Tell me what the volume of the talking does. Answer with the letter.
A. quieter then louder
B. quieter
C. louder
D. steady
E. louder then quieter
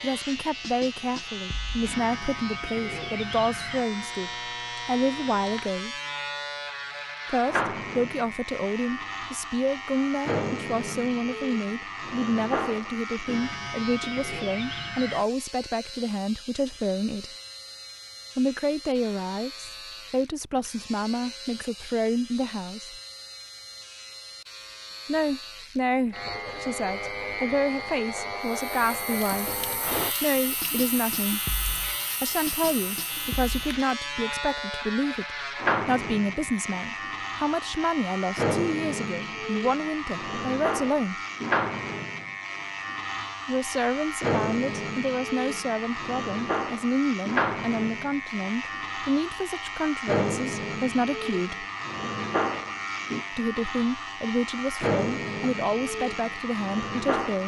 D.